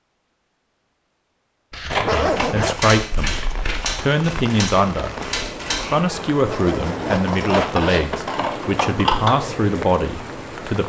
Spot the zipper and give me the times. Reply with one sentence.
The zipper can be heard from 2.0 to 2.8 s and from 6.5 to 7.9 s.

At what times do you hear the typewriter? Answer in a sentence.
The typewriter can be heard from 2.7 to 6.1 s.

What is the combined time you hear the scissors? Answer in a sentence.
You can hear the scissors for 5 seconds altogether.